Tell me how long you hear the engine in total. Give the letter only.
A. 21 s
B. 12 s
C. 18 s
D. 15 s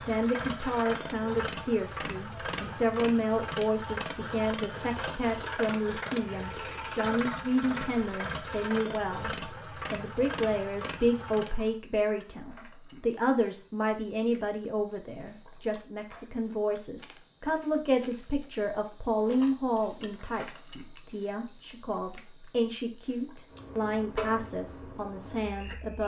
B.